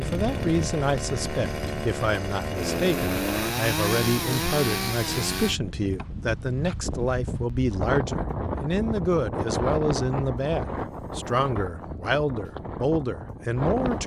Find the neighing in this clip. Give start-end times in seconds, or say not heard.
not heard.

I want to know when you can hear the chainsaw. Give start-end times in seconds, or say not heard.
0.0-5.6.